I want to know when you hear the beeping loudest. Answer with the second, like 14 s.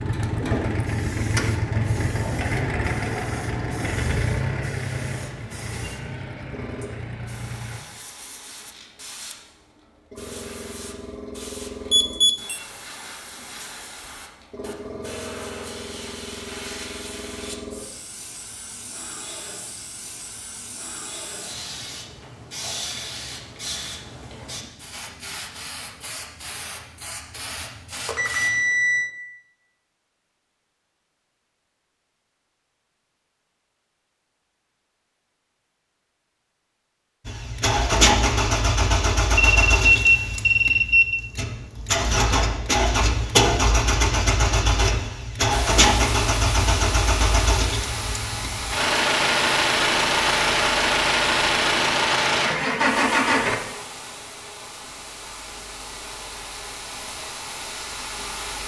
40 s.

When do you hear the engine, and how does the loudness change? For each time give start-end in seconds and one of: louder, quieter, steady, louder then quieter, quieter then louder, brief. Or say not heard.
0.0-7.8 quieter
37.2-53.6 steady.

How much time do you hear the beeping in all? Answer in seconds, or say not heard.
4 s.